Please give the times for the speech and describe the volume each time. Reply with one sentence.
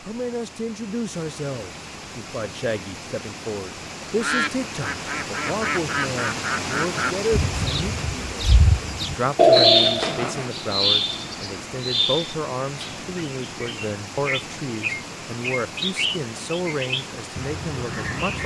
The speech can be heard from 0.0 to 18.4 s, at a steady volume.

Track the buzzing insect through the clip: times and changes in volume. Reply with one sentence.
The buzzing insect can't be heard in this clip.